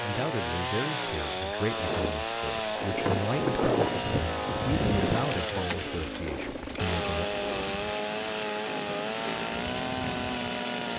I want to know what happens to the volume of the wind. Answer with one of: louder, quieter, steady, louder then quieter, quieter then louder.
quieter.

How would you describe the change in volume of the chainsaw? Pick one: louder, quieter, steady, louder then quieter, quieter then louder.
steady.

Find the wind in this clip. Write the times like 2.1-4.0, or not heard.
1.7-10.9.